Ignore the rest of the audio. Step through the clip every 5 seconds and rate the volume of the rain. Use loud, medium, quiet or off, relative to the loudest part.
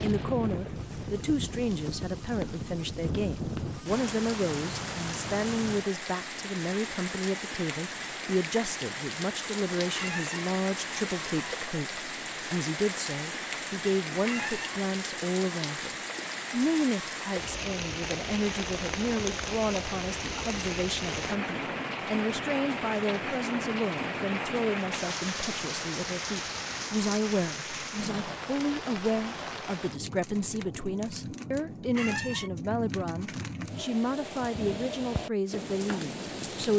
loud, loud, loud, loud, loud, loud, medium, loud.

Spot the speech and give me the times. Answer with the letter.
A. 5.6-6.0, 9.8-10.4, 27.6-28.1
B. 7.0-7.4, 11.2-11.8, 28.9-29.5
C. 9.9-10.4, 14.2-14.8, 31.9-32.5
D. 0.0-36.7
D.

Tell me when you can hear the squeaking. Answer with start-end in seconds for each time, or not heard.
9.9-10.4, 14.2-14.8, 31.9-32.5.